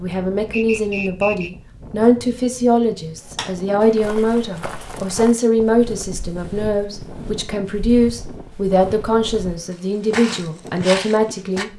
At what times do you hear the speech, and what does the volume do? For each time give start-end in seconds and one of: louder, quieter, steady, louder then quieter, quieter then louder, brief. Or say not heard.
0.0-11.7 steady.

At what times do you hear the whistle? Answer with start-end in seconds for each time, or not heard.
0.5-1.5.